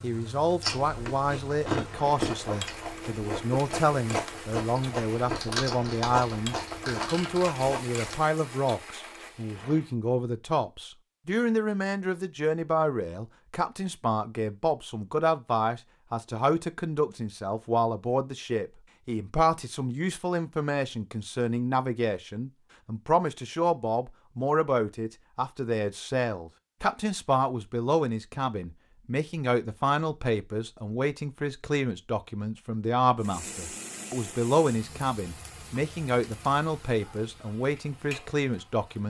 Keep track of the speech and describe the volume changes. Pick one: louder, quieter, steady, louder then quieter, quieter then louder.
steady.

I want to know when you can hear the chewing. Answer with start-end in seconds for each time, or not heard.
0.6-8.2.